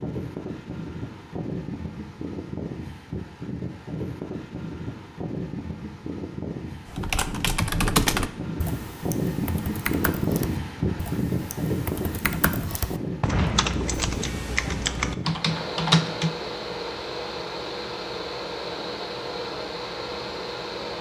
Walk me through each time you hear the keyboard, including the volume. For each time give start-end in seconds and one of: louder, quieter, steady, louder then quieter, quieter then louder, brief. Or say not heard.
6.8-16.4 quieter then louder.